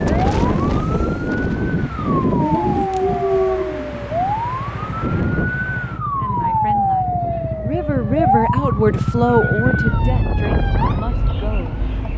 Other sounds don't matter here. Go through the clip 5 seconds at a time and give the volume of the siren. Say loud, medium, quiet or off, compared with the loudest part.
medium, loud, medium.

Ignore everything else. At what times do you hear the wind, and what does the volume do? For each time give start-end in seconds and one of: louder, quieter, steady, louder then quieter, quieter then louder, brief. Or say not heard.
0.0-12.1 quieter then louder.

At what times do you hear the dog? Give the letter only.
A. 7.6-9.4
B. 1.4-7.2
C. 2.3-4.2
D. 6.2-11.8
C.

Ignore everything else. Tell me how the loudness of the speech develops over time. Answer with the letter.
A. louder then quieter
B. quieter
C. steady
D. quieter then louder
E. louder
A.